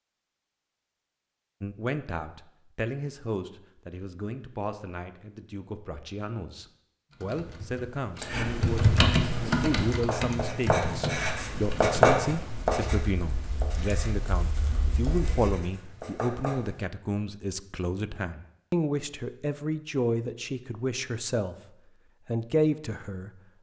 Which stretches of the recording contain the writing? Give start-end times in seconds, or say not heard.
9.2-16.9.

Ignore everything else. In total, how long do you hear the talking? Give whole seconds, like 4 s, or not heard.
21 s.